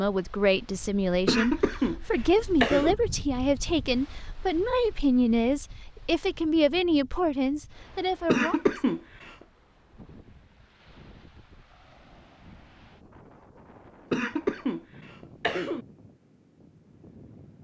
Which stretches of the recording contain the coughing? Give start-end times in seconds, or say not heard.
1.2-3.0, 8.2-9.3, 14.1-15.8.